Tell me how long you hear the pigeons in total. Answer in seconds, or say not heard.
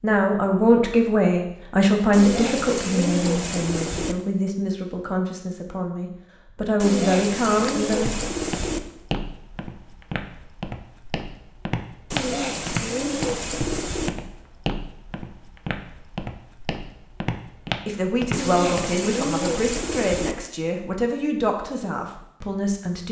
8 s.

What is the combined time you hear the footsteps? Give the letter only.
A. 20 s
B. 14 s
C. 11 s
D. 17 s
C.